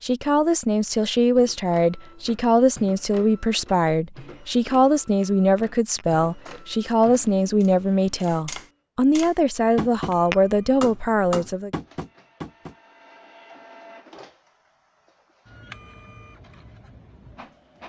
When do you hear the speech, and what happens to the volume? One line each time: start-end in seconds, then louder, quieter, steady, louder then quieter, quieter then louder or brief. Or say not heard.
0.0-11.7 steady.